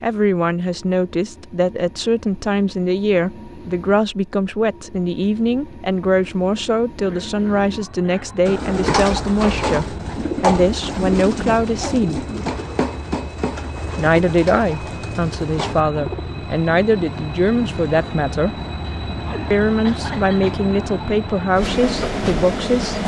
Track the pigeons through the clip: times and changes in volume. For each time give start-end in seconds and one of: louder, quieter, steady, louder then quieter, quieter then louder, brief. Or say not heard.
8.4-16.4 quieter.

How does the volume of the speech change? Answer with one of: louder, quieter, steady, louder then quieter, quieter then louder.
steady.